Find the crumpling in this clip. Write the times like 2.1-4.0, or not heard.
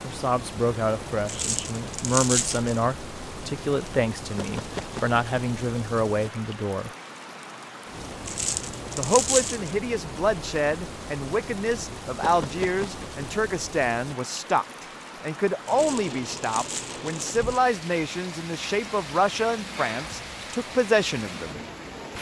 1.2-2.8, 8.2-9.8, 15.7-17.6.